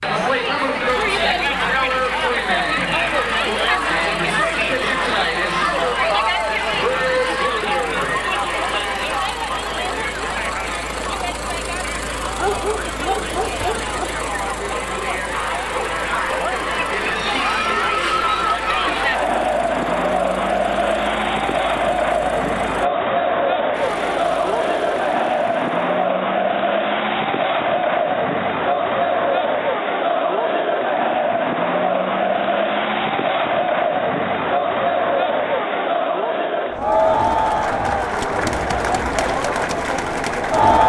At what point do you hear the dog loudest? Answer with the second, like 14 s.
13 s.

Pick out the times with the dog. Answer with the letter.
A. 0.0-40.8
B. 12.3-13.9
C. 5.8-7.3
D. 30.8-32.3
B.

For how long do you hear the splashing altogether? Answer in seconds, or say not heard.
not heard.